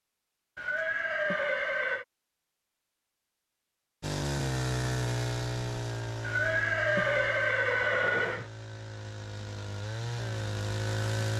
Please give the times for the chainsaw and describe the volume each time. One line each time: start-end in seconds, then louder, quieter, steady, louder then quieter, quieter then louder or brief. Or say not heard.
4.0-11.3 quieter then louder.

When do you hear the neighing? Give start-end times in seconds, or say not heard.
0.6-2.0, 6.2-8.4.